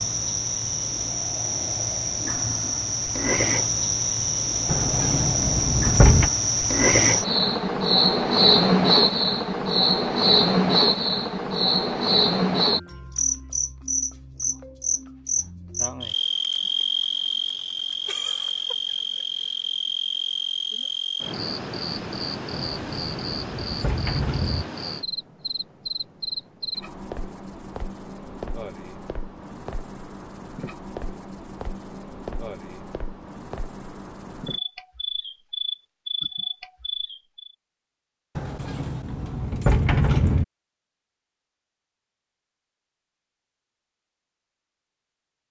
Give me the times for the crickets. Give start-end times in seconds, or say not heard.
0.0-37.5.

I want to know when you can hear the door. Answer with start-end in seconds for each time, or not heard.
4.7-6.3, 22.5-24.6, 38.4-40.5.